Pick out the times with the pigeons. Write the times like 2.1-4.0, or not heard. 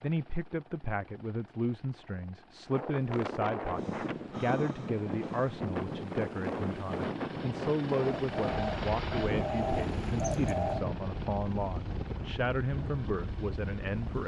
8.0-10.8.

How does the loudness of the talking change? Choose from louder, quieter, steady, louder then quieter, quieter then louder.
steady.